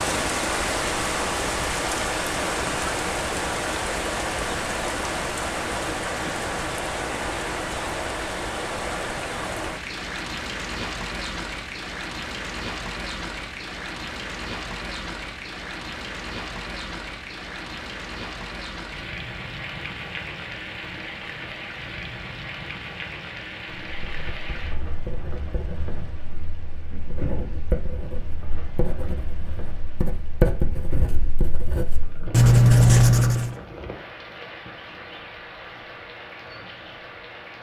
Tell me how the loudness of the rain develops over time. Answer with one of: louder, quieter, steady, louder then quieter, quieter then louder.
quieter.